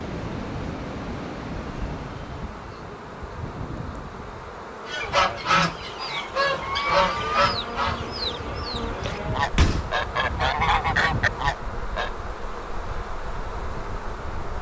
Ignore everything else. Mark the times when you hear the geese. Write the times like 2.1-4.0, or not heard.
4.8-12.1.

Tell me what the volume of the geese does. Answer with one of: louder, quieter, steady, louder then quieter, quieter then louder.
quieter then louder.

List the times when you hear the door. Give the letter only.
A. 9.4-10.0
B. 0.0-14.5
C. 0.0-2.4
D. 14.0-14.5
A.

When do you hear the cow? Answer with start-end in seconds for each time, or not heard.
7.1-9.5.